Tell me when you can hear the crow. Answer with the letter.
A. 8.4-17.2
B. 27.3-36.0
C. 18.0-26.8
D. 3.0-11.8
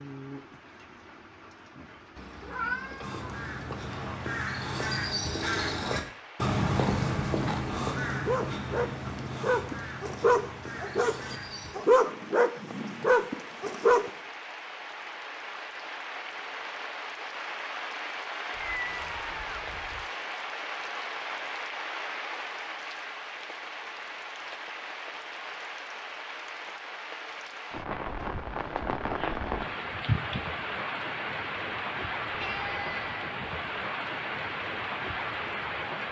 D.